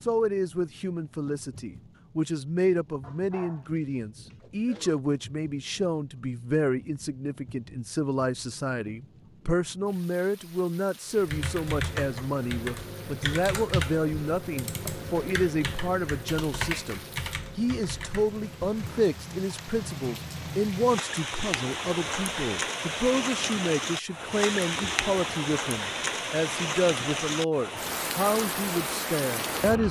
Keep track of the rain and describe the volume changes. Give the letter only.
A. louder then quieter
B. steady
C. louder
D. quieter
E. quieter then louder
C.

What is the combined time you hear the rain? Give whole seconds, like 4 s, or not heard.
30 s.